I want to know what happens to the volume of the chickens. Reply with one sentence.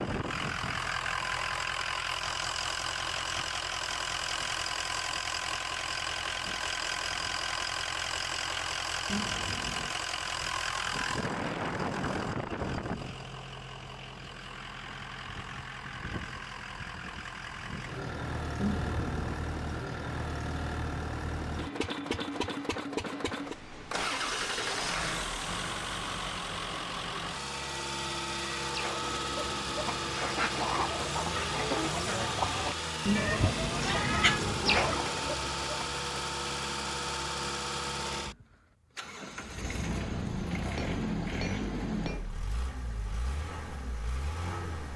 The loudness of the chickens goes up.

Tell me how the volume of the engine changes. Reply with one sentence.
The loudness of the engine stays about the same.